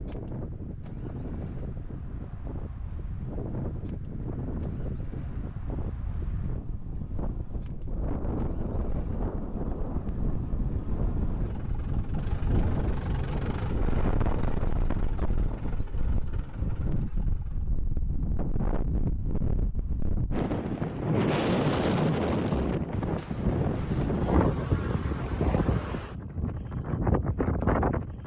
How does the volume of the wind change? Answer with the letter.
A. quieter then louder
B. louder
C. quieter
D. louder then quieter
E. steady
B.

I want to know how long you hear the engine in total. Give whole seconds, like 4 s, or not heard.
18 s.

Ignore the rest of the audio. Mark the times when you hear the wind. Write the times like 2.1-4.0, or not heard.
0.0-28.2.